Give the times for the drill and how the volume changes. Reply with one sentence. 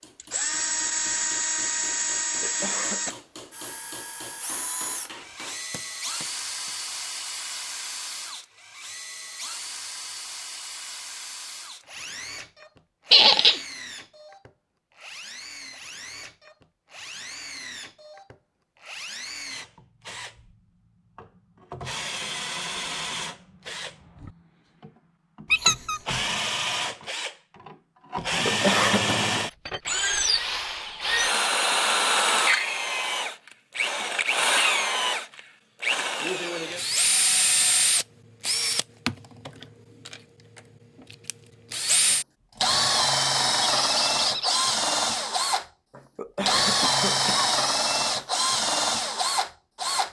The drill can be heard from 0.1 to 50.0 s, getting quieter then louder.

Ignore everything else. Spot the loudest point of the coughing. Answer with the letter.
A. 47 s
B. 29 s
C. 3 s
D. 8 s
B.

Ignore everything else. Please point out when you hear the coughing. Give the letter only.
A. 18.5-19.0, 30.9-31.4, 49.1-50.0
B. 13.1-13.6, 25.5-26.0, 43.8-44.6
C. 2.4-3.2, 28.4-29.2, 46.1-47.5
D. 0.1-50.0
C.